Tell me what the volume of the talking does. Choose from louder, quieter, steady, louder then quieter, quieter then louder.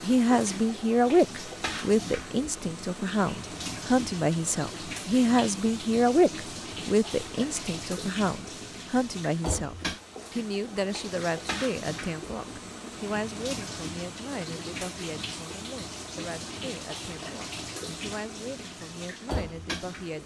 quieter.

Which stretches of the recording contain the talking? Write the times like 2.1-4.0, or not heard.
0.0-20.2.